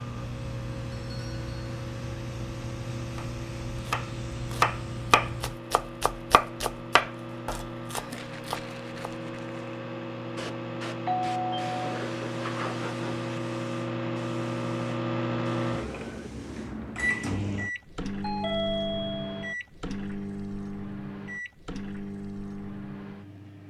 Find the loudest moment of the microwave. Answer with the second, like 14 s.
15 s.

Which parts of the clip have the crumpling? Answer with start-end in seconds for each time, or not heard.
8.1-9.8.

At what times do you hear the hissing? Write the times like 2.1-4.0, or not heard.
0.0-5.5, 10.3-17.1.